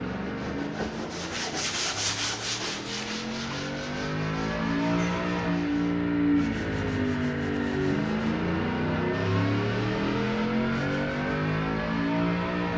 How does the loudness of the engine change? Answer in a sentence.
The volume of the engine goes up.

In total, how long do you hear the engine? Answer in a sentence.
You can hear the engine for 13 seconds altogether.